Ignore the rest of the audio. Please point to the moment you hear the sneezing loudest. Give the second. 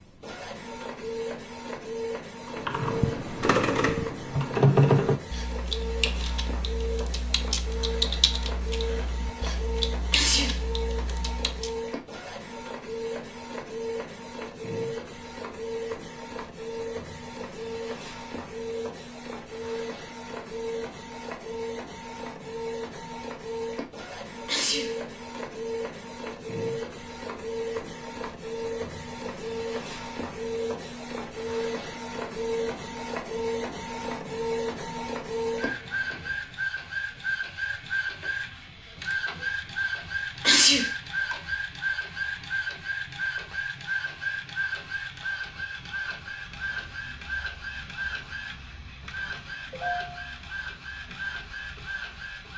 41 s.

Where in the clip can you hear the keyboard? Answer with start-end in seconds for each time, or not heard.
2.5-11.8.